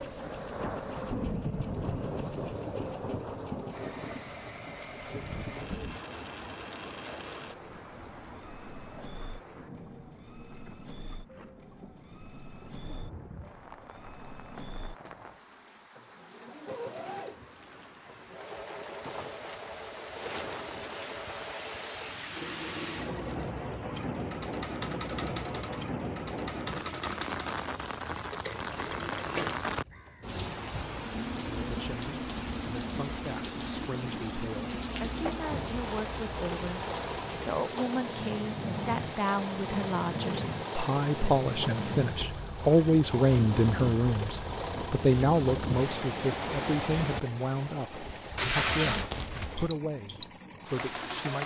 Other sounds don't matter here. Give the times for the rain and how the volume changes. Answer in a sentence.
You can hear the rain from 0.0 to 51.4 s, getting quieter then louder.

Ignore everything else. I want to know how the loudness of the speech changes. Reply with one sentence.
The loudness of the speech goes up, then down.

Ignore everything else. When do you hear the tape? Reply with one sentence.
You can hear the tape from 48.4 to 49.5 s.